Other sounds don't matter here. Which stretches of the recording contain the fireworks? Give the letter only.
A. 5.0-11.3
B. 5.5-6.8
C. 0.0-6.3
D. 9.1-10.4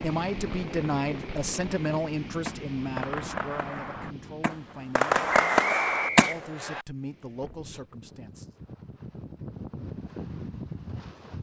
C.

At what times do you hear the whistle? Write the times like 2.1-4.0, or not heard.
5.5-6.8.